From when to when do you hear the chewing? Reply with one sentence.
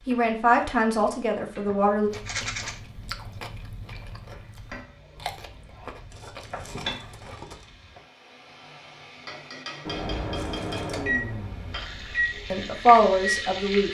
You can hear the chewing from 2.0 to 7.5 s.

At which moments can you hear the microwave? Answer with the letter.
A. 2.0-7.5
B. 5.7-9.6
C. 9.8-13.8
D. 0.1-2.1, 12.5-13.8
C.